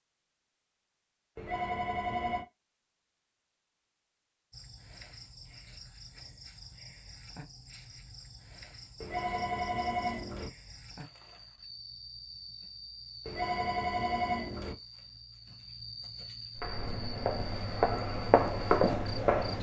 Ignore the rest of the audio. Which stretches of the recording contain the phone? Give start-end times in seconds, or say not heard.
1.4-2.5, 9.0-10.5, 13.2-14.8.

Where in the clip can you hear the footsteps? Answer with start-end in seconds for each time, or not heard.
16.6-19.5.